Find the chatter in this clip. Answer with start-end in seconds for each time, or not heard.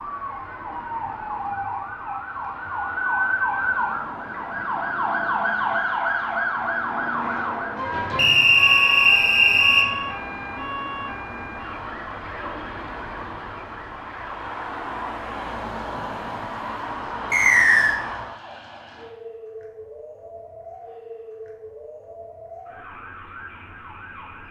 not heard.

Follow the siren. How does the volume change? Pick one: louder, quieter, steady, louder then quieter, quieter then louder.
quieter.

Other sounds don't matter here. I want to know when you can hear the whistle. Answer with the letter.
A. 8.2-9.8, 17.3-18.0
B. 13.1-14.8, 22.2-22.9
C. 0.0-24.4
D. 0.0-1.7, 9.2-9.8
A.